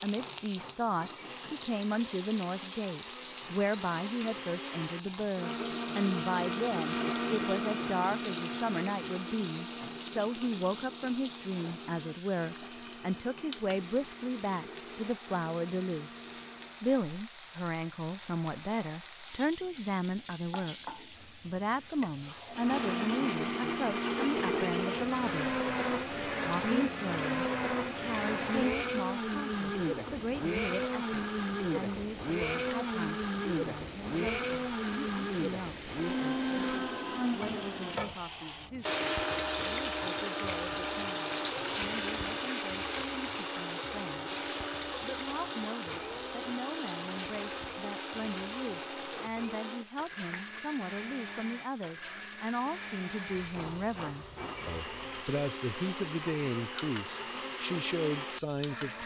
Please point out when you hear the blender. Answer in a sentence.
The blender can be heard from 0.0 to 16.9 s and from 22.5 to 59.0 s.